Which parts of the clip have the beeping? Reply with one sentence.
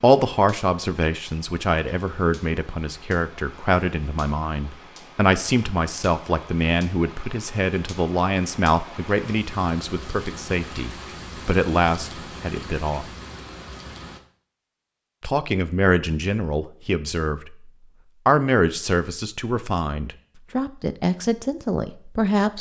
The beeping can't be heard in this clip.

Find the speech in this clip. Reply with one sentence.
The speech can be heard from 0.0 to 13.1 s and from 15.2 to 22.5 s.